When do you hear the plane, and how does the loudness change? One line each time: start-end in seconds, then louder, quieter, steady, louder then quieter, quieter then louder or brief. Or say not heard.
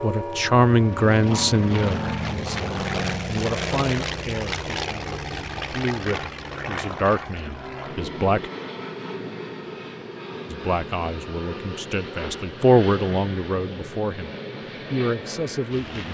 0.0-16.0 quieter.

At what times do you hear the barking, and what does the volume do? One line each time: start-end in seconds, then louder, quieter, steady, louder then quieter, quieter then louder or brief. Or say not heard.
not heard.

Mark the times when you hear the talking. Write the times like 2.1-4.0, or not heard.
0.0-8.4, 10.5-14.3, 14.9-16.0.